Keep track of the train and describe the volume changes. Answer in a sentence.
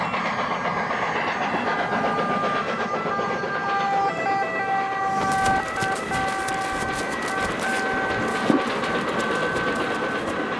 The volume of the train goes down, then up.